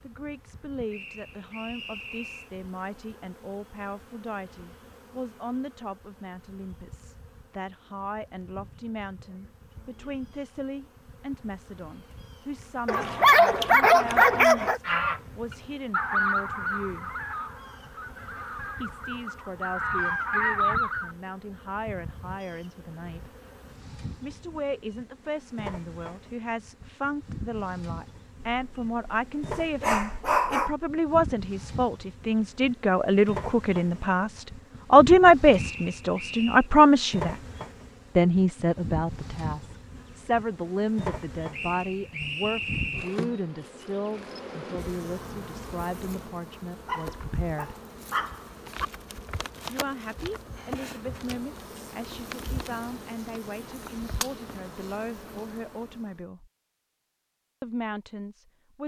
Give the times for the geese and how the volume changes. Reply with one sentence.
The geese can be heard from 14.8 to 21.1 s, getting quieter then louder.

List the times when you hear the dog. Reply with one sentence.
The dog can be heard from 12.8 to 14.8 s, from 28.5 to 30.7 s and from 46.9 to 48.9 s.